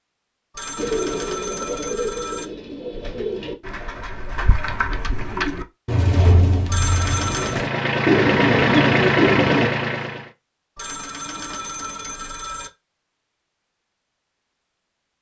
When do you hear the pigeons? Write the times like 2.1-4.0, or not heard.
0.8-9.7.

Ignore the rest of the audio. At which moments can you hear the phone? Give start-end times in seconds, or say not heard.
0.6-2.5, 6.7-7.5, 10.8-12.7.